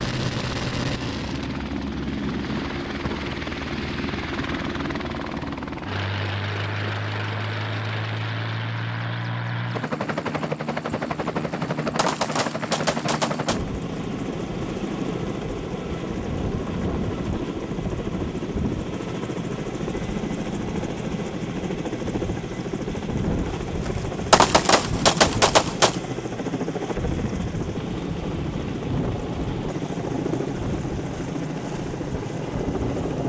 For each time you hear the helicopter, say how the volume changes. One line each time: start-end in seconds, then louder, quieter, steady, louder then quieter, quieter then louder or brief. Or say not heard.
0.0-33.2 steady.